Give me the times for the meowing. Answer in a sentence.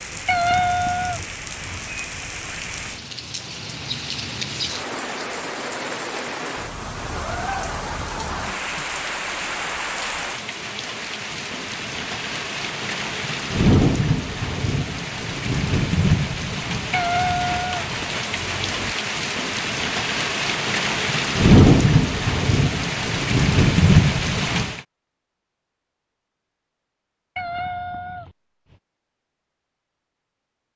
You can hear the meowing from 0.2 to 1.8 s, from 16.9 to 18.9 s and from 27.4 to 28.8 s.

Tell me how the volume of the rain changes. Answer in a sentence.
The volume of the rain goes up.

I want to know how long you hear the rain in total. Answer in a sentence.
The rain can be heard for 25 seconds in total.